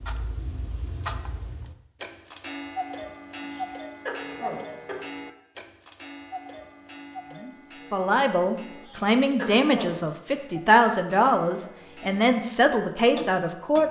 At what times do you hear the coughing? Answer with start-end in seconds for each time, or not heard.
3.4-5.0, 8.8-10.0.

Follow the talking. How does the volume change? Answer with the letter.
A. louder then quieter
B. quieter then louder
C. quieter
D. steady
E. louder
D.